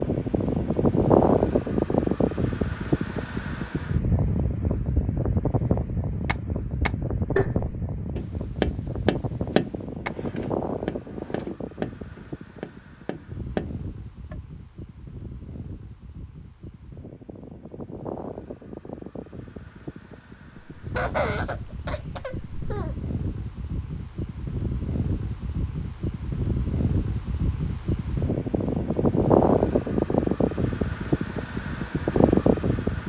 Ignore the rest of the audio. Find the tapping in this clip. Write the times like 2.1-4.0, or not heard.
6.2-14.3.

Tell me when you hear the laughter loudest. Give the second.
21 s.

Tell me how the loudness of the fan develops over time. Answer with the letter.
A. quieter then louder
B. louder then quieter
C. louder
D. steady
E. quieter
A.